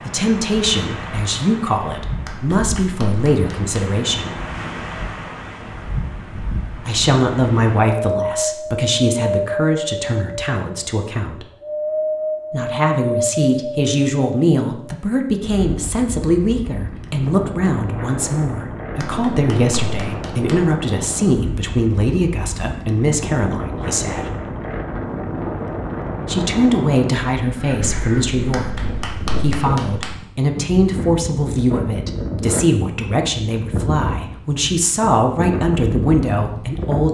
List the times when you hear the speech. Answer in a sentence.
You can hear the speech from 0.0 to 4.3 s, from 6.8 to 11.4 s, from 12.5 to 24.2 s, from 26.2 to 28.7 s and from 29.4 to 37.1 s.